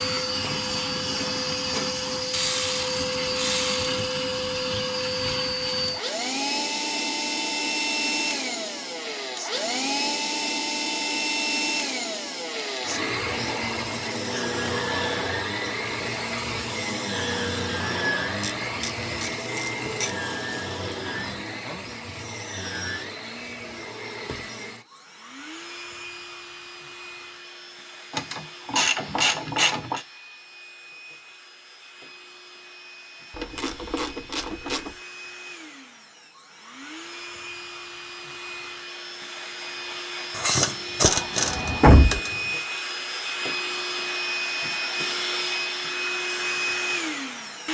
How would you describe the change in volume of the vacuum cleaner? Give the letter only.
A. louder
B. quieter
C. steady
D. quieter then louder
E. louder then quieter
D.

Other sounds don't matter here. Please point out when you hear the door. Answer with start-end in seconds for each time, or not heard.
41.0-42.2.